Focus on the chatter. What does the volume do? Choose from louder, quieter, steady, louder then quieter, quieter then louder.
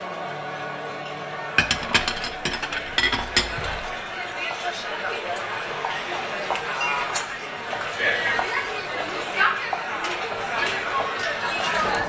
louder.